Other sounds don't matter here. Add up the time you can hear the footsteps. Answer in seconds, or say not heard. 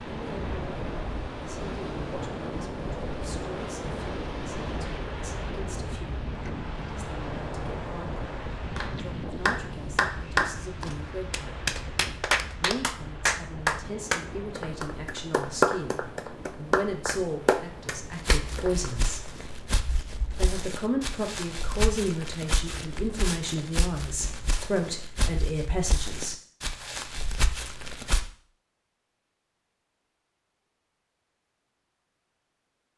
10 s.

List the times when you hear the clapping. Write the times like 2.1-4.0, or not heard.
8.8-18.9.